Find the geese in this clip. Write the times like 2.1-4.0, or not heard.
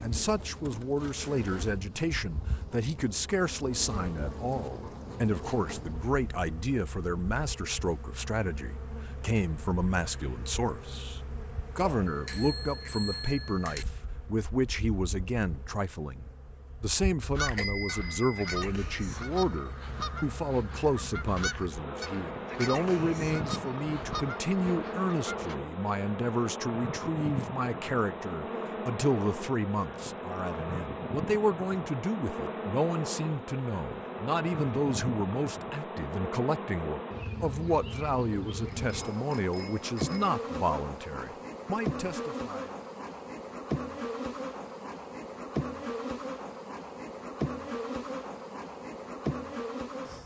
17.4-25.6.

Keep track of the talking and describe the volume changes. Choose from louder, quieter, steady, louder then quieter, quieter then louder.
steady.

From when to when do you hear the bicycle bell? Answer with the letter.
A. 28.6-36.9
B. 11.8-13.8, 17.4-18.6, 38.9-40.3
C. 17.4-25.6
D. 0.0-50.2
B.